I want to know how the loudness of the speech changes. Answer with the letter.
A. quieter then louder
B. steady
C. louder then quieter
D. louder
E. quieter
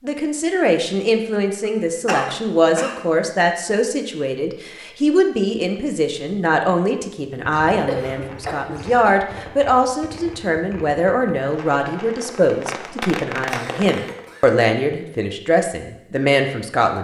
B.